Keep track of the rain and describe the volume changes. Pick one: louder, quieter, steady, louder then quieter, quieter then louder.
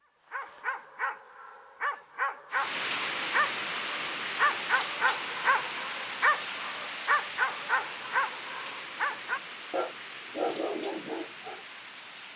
quieter.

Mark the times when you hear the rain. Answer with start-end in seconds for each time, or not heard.
2.5-12.3.